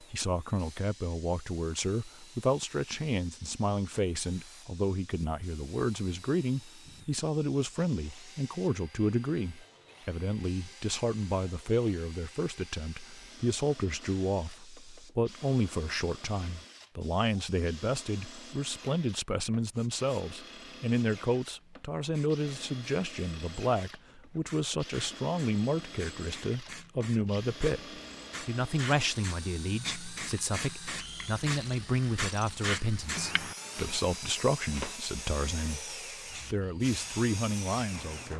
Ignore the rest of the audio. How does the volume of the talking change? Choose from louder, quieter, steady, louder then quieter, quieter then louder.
steady.